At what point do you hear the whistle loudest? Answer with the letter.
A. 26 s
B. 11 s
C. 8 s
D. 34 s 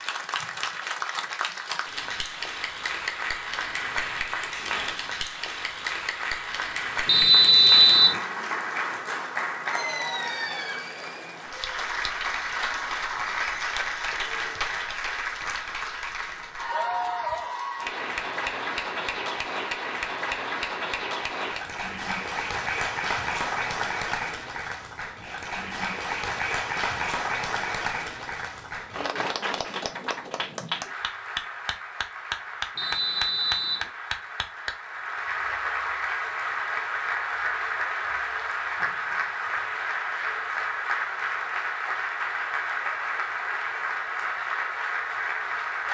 C.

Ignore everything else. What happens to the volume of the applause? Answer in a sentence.
The loudness of the applause stays about the same.